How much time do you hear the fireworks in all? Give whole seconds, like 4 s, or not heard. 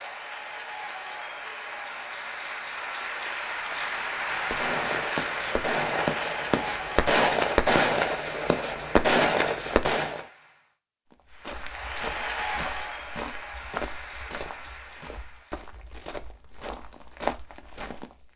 6 s.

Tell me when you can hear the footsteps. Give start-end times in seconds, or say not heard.
11.1-18.3.